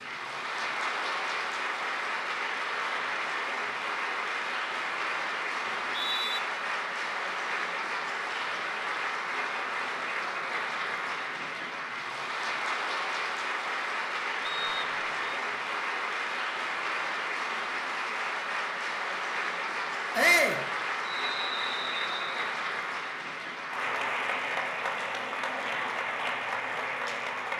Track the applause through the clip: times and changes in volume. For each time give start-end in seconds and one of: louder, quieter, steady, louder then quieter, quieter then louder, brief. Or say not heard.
0.0-27.5 steady.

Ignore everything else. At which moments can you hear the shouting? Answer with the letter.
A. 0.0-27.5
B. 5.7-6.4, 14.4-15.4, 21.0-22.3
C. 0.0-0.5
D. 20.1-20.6
D.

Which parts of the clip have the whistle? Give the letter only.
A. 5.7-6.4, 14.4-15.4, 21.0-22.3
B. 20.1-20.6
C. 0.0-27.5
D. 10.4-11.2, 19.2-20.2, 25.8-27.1
A.